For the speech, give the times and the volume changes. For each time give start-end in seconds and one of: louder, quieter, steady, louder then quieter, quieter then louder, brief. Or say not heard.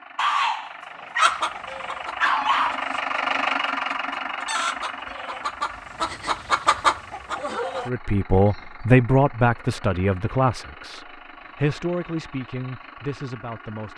7.8-13.9 quieter.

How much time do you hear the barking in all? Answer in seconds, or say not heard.
3 s.